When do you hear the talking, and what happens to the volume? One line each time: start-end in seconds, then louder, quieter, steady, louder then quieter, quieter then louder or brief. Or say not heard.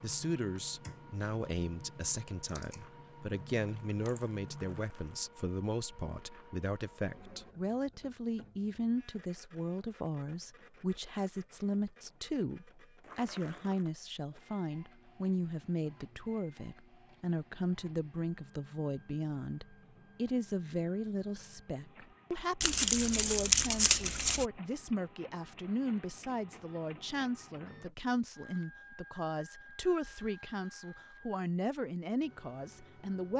0.0-33.3 steady.